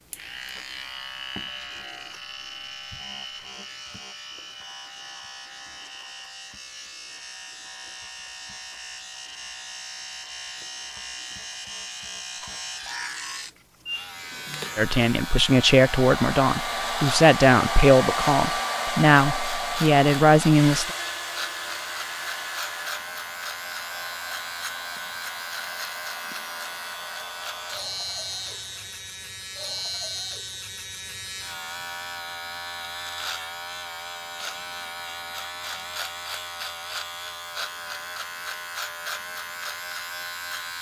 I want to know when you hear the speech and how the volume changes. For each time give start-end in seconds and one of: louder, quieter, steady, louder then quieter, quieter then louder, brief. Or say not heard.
14.8-20.9 steady.